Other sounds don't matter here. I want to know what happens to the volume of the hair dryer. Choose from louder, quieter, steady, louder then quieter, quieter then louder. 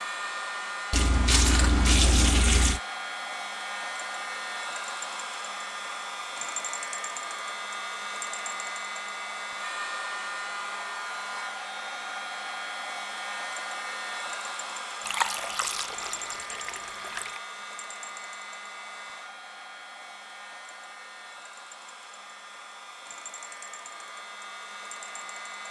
quieter.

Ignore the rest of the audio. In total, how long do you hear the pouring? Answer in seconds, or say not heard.
4 s.